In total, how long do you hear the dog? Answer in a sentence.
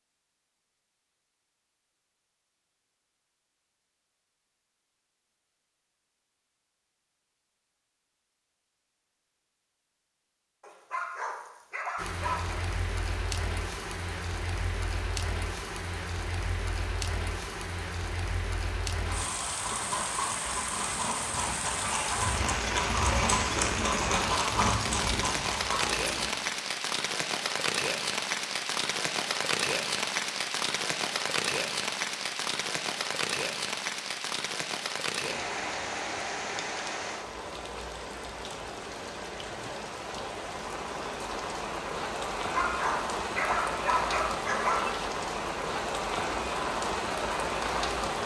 The dog can be heard for 4 seconds in total.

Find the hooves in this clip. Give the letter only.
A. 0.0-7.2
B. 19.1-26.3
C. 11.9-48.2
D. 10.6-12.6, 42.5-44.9
B.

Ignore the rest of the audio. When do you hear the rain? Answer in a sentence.
You can hear the rain from 11.9 to 48.2 s.